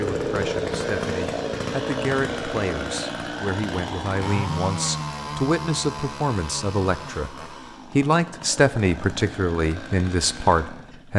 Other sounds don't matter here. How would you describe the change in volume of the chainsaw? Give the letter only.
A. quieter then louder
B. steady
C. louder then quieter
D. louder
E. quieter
E.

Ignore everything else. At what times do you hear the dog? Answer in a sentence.
The dog can't be heard in this clip.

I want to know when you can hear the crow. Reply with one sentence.
You can't hear the crow here.